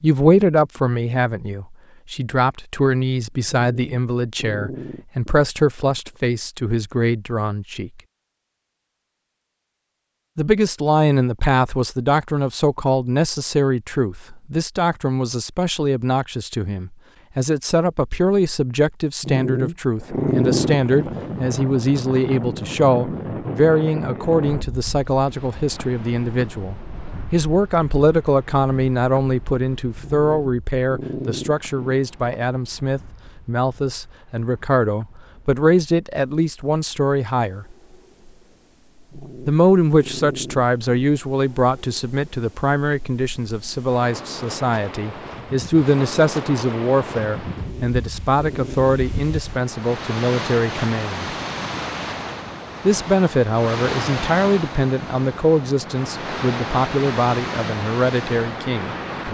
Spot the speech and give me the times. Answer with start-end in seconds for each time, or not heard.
0.0-8.0, 10.3-37.8, 39.5-51.4, 52.9-59.0.